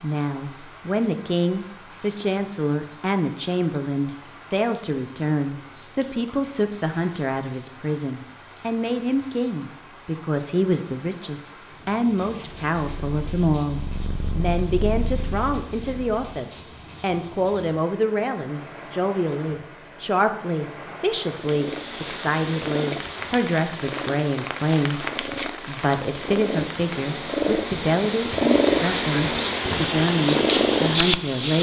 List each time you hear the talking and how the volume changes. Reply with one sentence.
You can hear the talking from 0.0 to 31.5 s, at a steady volume.